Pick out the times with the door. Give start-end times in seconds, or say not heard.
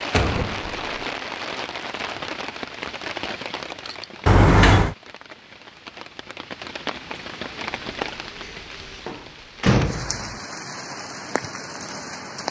0.1-1.0, 4.2-5.0, 8.4-10.3.